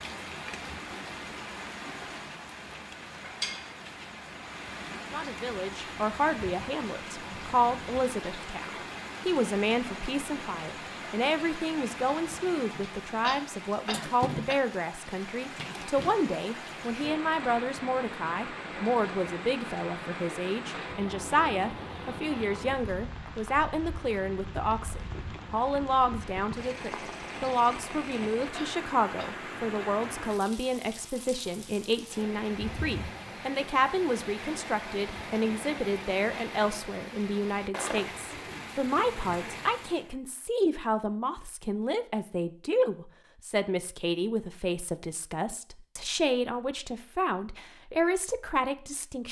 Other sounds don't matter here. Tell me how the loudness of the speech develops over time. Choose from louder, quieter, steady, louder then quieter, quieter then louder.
steady.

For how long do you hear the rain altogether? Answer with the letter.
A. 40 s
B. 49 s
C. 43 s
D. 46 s
A.